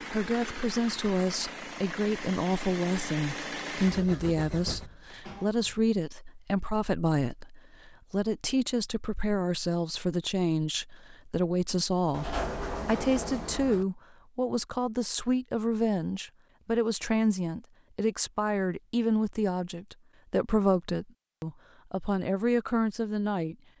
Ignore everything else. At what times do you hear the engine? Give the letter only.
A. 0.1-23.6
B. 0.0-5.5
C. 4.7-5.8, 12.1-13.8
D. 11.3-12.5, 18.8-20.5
B.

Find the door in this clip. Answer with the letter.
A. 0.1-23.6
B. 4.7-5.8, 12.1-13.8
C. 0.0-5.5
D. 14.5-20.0
B.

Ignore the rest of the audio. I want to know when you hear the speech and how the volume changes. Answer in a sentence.
You can hear the speech from 0.1 to 23.6 s, at a steady volume.